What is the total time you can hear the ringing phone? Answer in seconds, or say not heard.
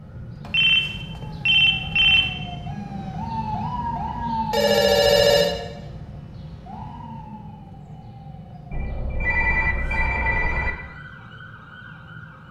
5 s.